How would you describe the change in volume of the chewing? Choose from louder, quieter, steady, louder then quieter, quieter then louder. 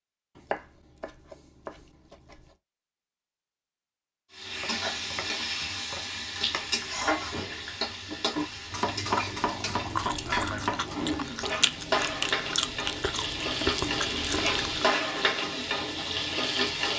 louder.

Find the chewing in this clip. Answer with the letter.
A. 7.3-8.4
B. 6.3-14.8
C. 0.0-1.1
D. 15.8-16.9
B.